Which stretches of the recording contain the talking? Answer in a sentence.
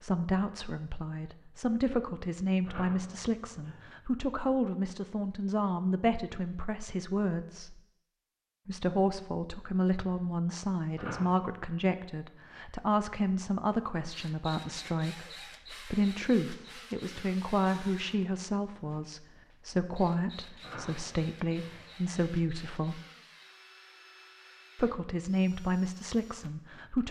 You can hear the talking from 0.0 to 7.8 s, from 8.7 to 23.0 s and from 24.8 to 27.0 s.